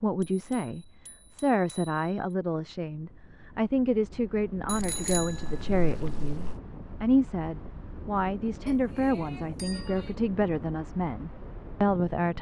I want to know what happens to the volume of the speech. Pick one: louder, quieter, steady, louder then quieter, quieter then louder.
steady.